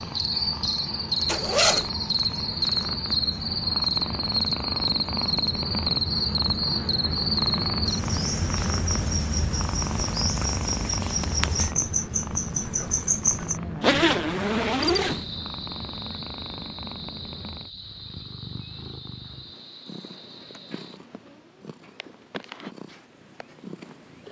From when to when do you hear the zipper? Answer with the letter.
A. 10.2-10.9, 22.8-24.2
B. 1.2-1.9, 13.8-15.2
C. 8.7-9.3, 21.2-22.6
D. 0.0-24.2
B.